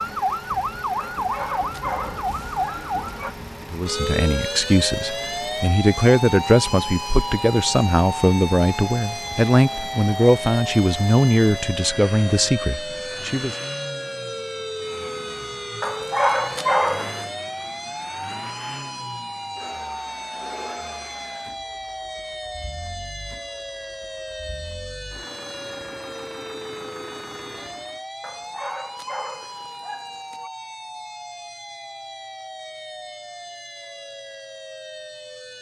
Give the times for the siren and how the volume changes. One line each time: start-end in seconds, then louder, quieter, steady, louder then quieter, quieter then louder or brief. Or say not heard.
0.0-35.5 quieter.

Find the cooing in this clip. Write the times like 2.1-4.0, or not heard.
not heard.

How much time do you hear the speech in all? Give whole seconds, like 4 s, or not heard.
10 s.